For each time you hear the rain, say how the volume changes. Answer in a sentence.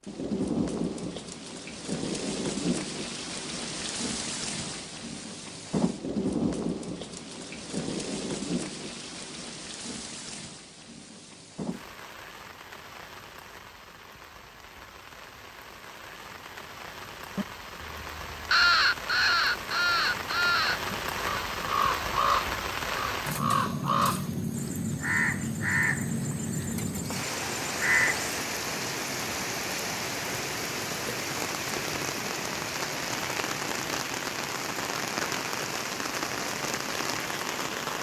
You can hear the rain from 0.0 to 37.9 s, getting quieter then louder.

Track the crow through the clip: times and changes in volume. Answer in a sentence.
You can hear the crow from 18.5 to 28.4 s, getting quieter.